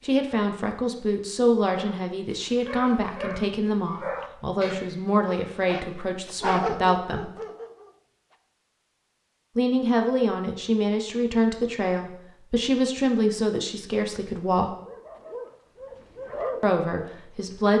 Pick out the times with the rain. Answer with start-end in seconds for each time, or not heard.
not heard.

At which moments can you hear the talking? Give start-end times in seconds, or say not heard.
0.0-7.3, 9.6-14.7, 16.6-17.7.